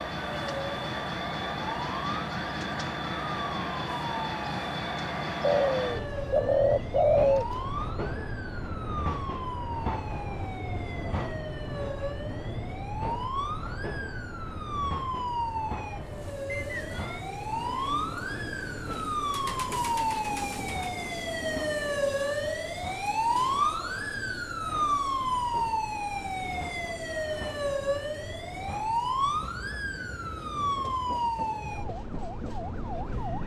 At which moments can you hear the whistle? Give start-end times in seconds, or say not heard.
16.4-17.2.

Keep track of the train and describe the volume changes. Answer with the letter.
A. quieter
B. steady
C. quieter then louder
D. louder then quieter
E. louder
A.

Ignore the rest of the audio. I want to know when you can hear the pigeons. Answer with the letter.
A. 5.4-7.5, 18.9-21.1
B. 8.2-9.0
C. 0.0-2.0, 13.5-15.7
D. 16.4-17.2
A.